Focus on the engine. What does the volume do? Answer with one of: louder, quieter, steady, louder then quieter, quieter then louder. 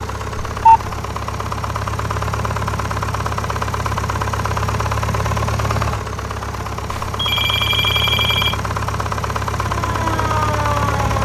steady.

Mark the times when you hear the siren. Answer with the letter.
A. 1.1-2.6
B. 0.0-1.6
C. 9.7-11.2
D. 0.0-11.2
C.